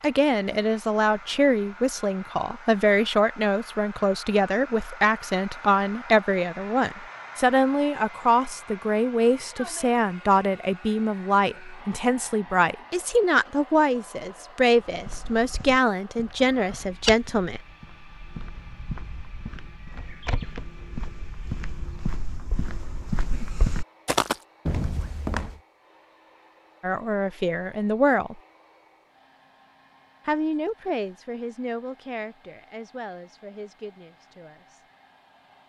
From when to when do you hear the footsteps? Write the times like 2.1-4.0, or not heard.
14.8-25.6.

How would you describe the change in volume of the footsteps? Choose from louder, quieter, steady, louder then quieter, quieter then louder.
quieter then louder.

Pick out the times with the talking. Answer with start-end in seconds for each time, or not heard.
0.0-17.6, 26.8-28.4, 30.2-34.8.